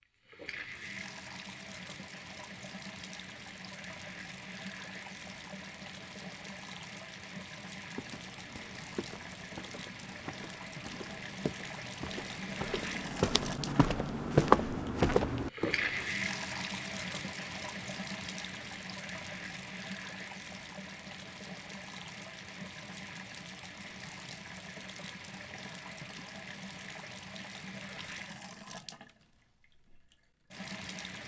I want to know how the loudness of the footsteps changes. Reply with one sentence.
The loudness of the footsteps goes up.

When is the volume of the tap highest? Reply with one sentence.
The loudest moment of the tap is at 16 seconds.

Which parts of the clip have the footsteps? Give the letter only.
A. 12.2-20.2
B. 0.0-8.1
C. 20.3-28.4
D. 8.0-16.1
D.